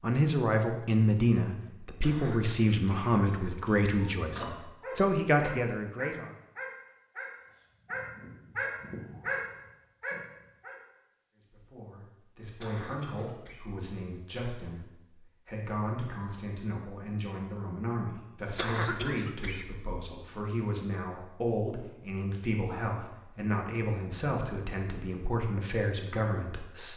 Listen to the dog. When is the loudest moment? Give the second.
9 s.